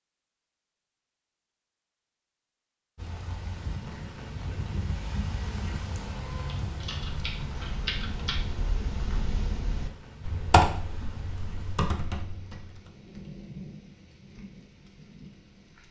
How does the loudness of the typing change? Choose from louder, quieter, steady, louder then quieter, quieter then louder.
louder then quieter.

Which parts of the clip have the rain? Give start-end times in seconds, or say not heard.
3.0-15.8.